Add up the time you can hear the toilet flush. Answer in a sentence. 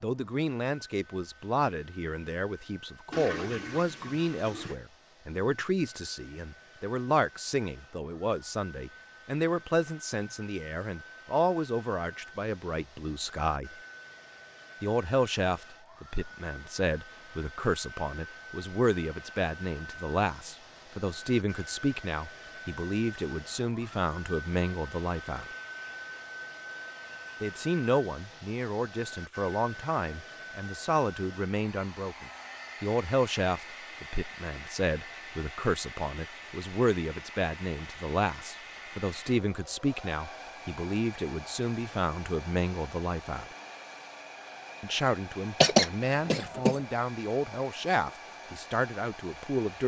The toilet flush can be heard for 2 seconds in total.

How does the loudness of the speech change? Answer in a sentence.
The loudness of the speech stays about the same.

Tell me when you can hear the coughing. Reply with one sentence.
The coughing can be heard from 45.6 to 46.8 s.